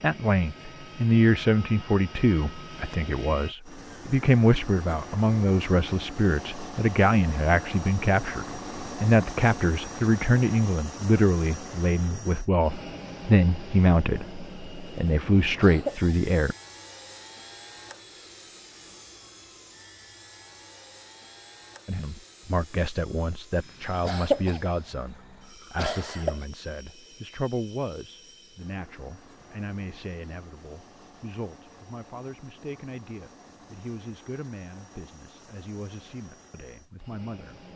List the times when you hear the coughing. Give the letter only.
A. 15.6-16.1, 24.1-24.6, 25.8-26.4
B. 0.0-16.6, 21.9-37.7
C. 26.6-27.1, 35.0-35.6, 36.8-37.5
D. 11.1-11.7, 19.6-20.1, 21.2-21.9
A.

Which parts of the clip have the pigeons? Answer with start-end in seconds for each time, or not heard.
not heard.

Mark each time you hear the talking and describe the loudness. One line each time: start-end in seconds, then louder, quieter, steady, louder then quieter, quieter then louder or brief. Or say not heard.
0.0-16.6 steady
21.9-37.7 quieter.